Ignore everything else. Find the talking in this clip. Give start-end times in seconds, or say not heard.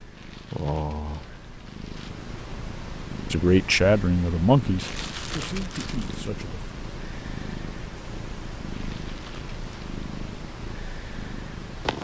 3.3-6.7.